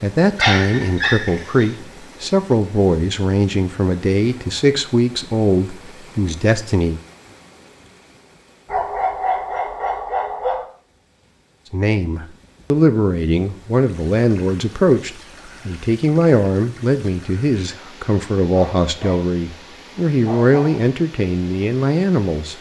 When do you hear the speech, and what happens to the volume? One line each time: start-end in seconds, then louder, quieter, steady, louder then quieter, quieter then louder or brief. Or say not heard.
0.0-7.0 steady
11.7-22.5 steady.